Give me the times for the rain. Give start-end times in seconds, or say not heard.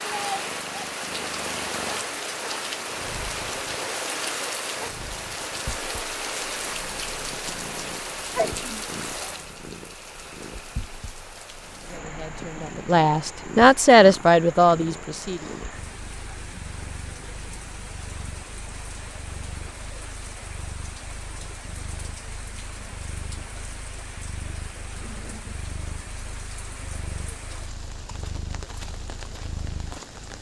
0.0-30.3.